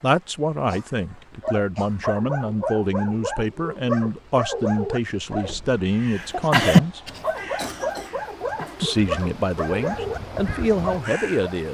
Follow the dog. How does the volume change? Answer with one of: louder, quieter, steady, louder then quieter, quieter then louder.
steady.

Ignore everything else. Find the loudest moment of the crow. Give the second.
7 s.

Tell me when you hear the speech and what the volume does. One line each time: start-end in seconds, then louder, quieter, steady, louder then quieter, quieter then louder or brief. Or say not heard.
0.0-7.0 steady
8.8-11.6 brief.